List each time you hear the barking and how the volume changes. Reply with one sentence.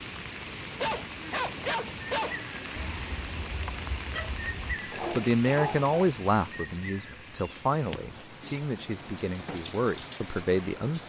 You can hear the barking from 0.6 to 5.9 s, getting quieter then louder.